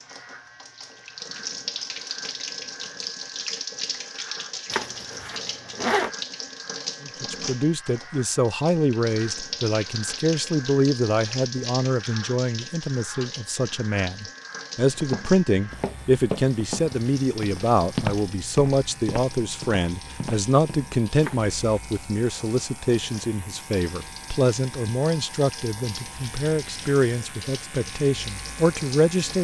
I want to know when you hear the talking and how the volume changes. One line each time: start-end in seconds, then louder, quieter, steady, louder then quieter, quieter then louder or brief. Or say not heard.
7.0-29.3 steady.